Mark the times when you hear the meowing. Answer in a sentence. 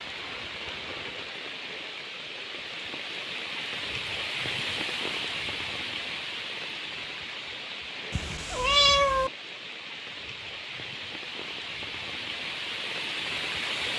You can hear the meowing from 8.1 to 9.3 s.